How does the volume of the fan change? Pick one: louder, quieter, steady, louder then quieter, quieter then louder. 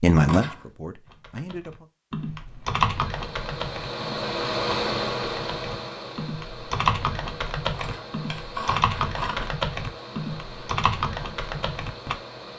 quieter.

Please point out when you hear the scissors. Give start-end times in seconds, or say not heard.
0.1-0.7, 7.7-9.5.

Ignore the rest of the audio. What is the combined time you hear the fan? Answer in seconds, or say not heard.
10 s.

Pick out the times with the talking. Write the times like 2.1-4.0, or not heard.
0.0-1.9.